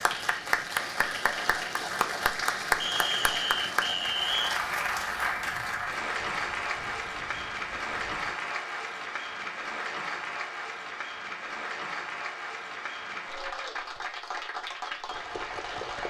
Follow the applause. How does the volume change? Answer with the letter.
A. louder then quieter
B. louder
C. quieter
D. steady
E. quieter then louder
C.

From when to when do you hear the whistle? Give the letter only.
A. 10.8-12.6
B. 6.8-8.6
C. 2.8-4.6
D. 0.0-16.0
C.